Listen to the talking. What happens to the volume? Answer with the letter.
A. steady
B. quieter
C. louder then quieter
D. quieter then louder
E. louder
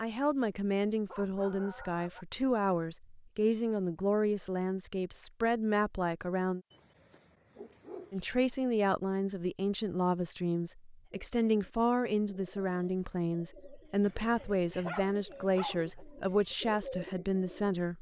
A.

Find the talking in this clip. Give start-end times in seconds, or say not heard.
0.0-6.6, 8.1-17.9.